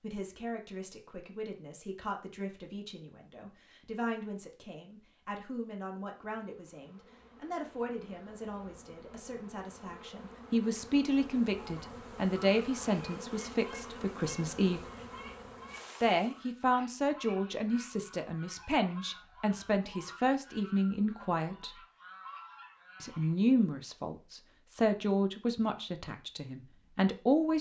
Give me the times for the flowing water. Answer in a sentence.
You can't hear the flowing water here.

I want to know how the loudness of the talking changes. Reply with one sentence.
The loudness of the talking goes up.